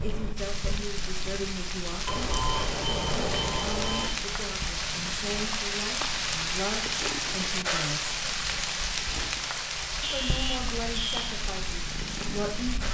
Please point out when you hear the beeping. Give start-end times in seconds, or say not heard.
2.0-4.1, 10.0-11.3.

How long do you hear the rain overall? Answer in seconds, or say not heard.
13 s.